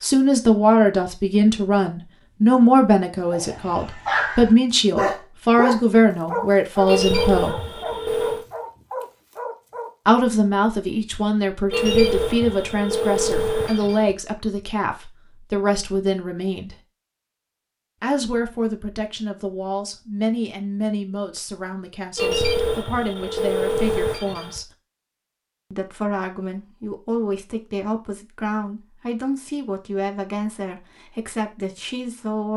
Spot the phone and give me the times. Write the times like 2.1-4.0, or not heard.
6.8-8.4, 11.7-14.2, 22.1-24.6.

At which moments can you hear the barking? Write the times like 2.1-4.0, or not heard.
3.3-9.9.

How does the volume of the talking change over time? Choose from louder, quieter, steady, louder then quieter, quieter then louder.
quieter.